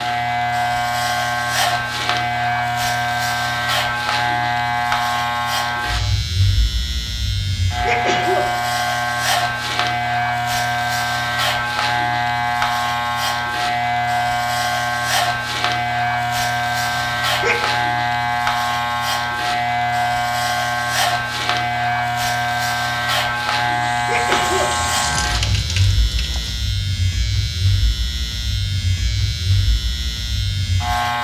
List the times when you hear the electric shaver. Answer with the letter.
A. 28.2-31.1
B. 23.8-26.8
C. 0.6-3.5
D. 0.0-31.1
D.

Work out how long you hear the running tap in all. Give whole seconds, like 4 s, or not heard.
3 s.